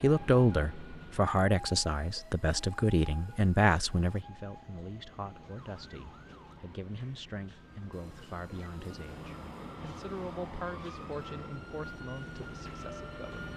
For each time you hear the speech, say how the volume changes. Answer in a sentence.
The speech can be heard from 0.0 to 13.5 s, getting quieter.